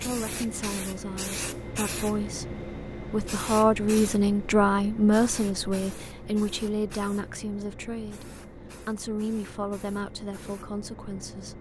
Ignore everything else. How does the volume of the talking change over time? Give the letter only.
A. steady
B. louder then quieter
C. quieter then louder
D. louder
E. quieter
B.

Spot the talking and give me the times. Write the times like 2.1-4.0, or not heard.
0.0-11.5.